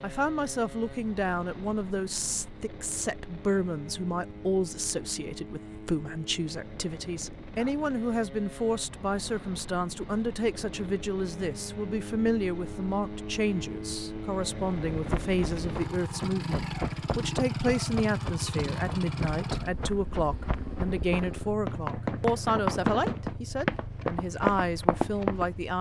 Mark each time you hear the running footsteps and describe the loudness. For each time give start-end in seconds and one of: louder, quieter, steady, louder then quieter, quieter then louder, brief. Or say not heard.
14.9-25.6 louder.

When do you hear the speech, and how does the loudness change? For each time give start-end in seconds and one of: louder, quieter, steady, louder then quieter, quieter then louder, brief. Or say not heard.
0.0-25.7 steady.